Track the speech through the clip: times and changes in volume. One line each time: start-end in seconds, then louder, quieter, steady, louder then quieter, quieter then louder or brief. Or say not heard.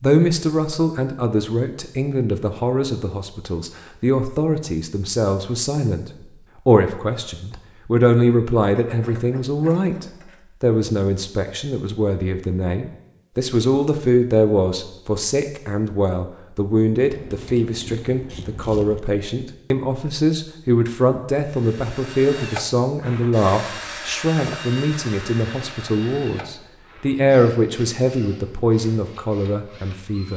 0.0-30.3 steady.